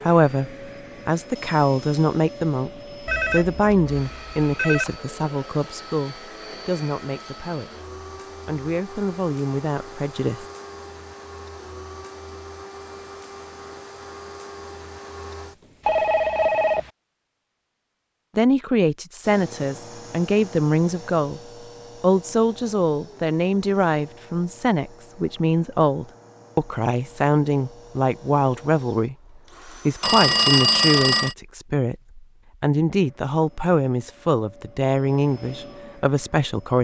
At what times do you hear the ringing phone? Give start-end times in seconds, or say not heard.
3.0-5.0, 15.8-16.9, 30.0-31.4.